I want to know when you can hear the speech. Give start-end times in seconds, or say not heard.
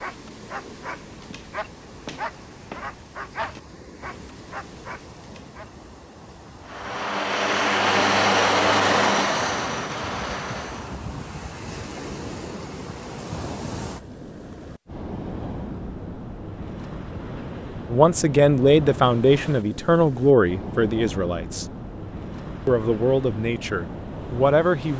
17.9-21.6, 22.6-24.9.